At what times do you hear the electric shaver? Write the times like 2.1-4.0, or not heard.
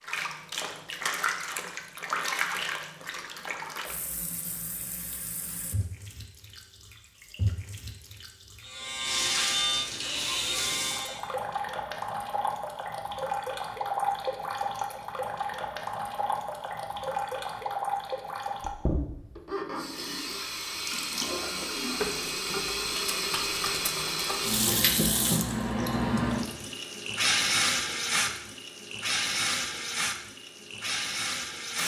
8.6-11.2.